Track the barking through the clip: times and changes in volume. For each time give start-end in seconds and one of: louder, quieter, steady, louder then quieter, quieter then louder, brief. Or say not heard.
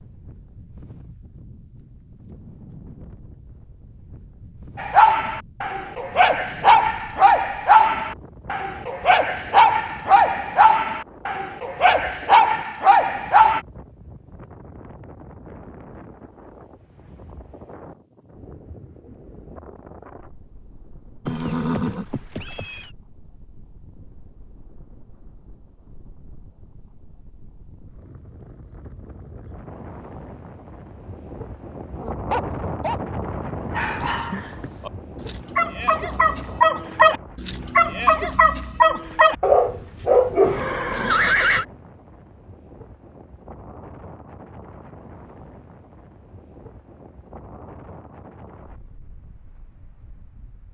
4.8-13.6 steady
31.9-33.0 brief
33.7-40.6 louder.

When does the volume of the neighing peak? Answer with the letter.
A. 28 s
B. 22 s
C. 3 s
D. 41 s
D.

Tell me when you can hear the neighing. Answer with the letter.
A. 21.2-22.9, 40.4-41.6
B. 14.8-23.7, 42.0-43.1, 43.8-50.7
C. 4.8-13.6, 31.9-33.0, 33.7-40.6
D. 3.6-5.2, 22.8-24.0
A.